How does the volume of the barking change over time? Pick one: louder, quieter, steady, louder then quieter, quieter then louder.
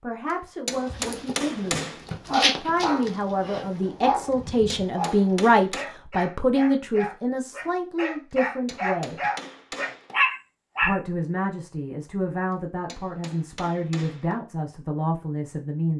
quieter then louder.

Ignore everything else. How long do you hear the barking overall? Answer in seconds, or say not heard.
10 s.